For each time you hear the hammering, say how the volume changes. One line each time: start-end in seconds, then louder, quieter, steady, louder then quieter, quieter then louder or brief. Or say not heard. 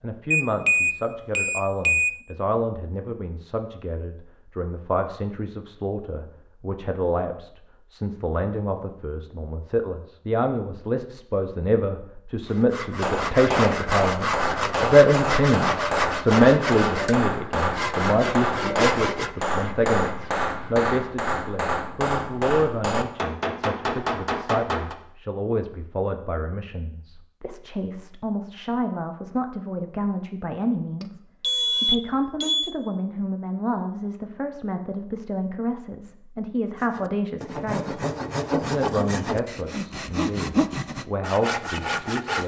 13.0-24.9 steady.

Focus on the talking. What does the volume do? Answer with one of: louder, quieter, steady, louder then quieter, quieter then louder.
louder then quieter.